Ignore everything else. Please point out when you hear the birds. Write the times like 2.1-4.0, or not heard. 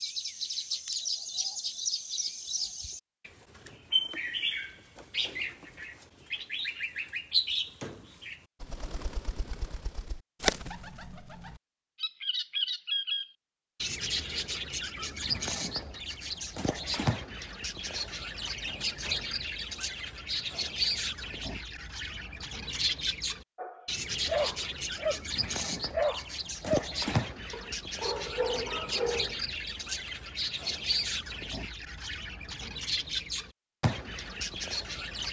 0.0-35.2.